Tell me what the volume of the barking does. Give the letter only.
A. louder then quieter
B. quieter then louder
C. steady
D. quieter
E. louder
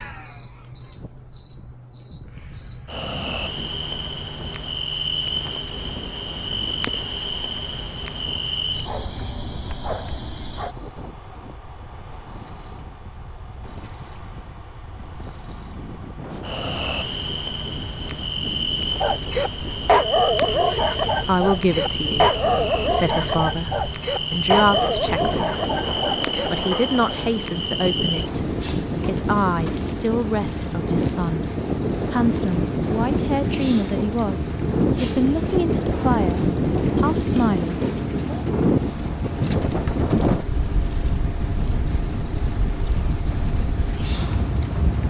D.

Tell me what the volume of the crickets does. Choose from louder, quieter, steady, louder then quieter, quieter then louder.
steady.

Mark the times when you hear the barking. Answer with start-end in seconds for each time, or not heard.
19.0-26.9.